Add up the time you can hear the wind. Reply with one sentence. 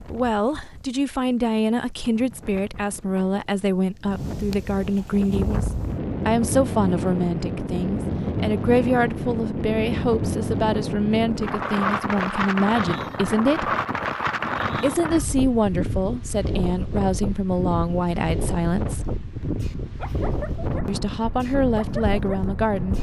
The wind can be heard for 23 seconds in total.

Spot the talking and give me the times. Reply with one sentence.
The talking can be heard from 0.0 to 13.8 s, from 14.8 to 19.1 s and from 20.9 to 22.9 s.